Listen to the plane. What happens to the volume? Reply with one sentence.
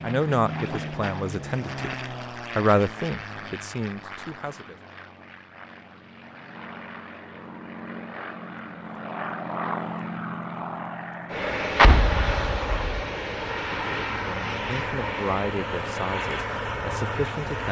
The volume of the plane goes down, then up.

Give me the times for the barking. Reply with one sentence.
You can't hear the barking here.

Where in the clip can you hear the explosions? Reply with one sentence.
The explosions can be heard from 11.8 to 12.9 s.